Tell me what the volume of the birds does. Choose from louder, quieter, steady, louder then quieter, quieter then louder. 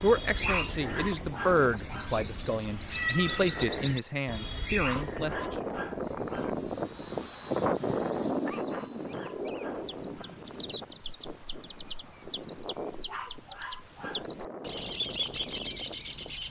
quieter then louder.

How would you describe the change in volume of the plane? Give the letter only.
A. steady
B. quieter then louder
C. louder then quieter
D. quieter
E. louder
C.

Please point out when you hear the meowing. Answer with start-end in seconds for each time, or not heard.
2.9-3.8.